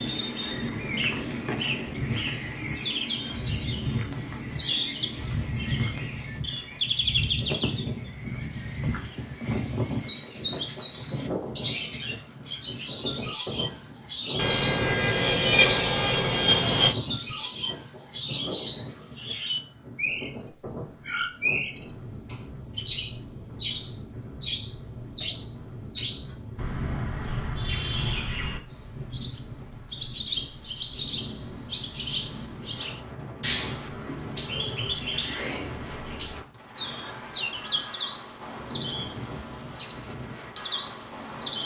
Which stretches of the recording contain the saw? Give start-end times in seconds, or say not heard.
14.3-16.9.